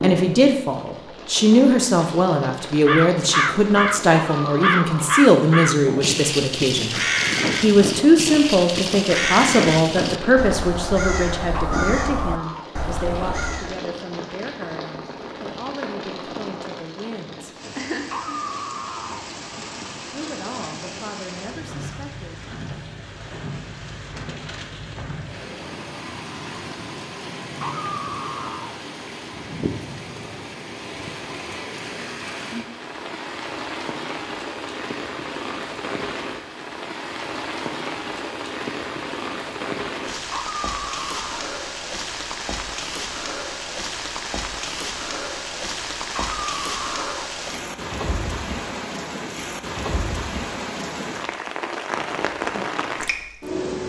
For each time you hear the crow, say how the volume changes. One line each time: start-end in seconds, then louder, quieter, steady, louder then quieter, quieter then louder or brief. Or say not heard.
2.9-13.8 quieter.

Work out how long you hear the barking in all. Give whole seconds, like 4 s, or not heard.
7 s.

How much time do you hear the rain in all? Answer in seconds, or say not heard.
54 s.